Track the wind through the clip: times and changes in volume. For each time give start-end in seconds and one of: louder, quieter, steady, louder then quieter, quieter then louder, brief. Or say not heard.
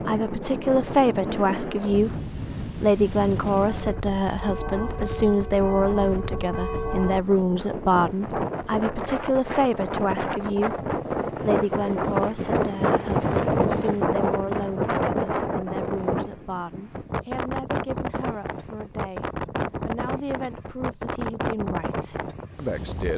0.0-23.1 louder then quieter.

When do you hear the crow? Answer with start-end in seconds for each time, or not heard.
not heard.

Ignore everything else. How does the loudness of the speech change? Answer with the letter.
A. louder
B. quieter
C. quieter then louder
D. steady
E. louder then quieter
B.